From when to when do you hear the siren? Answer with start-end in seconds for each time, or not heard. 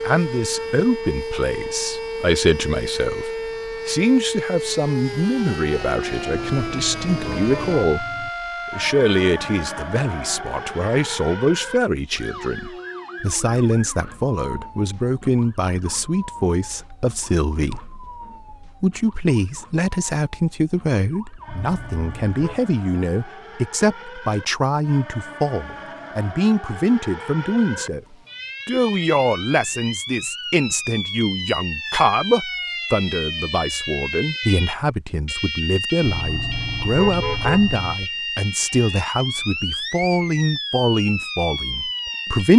0.0-42.5.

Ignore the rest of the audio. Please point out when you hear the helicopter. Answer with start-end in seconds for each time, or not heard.
not heard.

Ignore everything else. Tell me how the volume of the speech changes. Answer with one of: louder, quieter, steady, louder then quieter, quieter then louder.
steady.